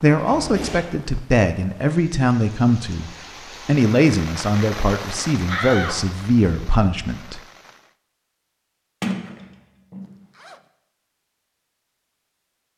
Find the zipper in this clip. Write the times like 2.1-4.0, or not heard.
10.1-10.7.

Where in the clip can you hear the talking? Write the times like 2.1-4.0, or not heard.
0.0-7.4.